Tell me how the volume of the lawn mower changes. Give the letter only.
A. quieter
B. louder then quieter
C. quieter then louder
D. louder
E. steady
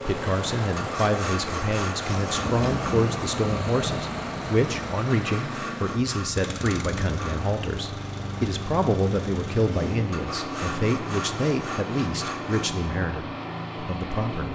E.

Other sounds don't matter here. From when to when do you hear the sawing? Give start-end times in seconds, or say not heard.
0.8-3.0, 5.2-7.5, 10.1-12.7.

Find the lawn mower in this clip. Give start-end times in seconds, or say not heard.
0.0-14.5.